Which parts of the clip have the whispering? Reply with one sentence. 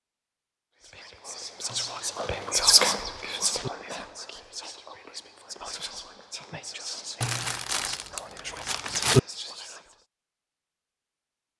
The whispering can be heard from 0.8 to 9.9 s.